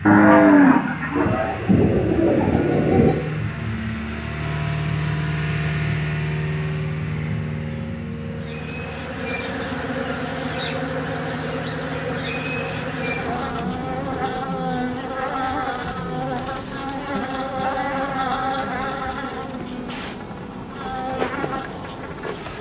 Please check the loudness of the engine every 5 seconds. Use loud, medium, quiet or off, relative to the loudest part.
loud, loud, medium, off, off.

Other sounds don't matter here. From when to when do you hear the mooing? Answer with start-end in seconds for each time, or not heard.
0.1-1.6.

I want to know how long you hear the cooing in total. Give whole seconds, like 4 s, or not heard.
3 s.